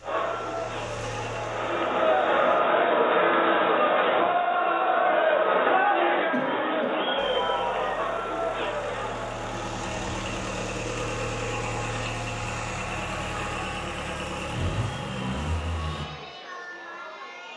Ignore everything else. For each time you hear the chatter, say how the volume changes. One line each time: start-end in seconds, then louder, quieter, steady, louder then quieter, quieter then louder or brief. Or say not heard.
0.0-17.5 quieter.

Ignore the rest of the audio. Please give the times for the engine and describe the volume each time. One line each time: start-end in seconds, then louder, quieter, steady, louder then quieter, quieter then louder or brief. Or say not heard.
0.0-2.6 brief
7.2-16.1 louder.